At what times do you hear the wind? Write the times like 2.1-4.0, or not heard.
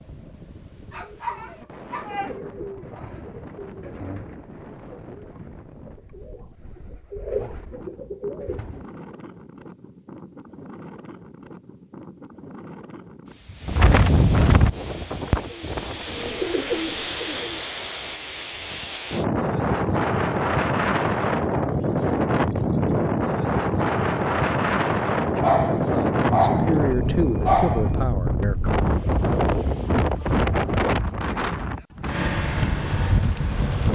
0.0-33.9.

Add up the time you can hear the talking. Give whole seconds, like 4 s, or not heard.
3 s.